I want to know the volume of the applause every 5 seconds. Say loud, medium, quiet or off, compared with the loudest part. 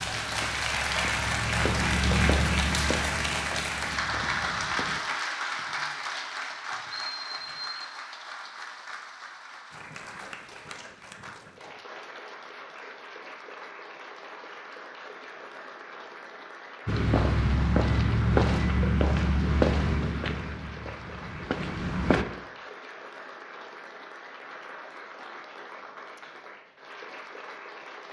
loud, medium, quiet, quiet, quiet, quiet.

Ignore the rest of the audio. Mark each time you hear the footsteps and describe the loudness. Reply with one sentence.
The footsteps can be heard from 0.0 to 5.0 s, getting louder then quieter; and from 16.9 to 22.2 s, getting quieter.